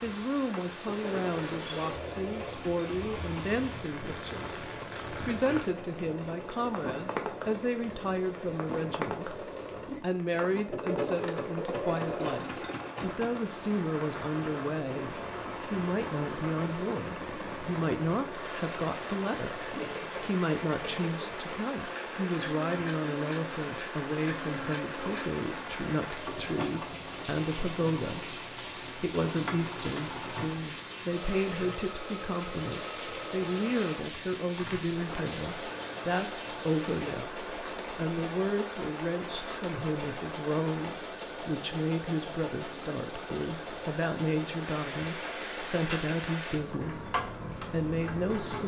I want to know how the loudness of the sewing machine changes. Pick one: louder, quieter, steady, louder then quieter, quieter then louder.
steady.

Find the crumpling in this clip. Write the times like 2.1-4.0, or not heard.
34.5-35.2.